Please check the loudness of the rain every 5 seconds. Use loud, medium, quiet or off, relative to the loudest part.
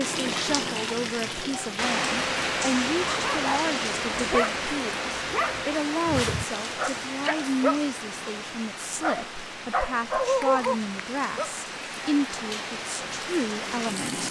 loud, medium, medium.